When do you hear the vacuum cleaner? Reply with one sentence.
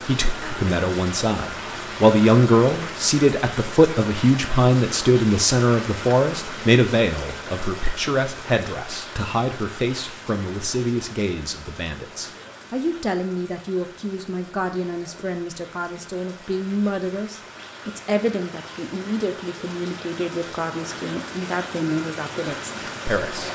The vacuum cleaner can't be heard in this clip.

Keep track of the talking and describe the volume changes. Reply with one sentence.
The volume of the talking goes down.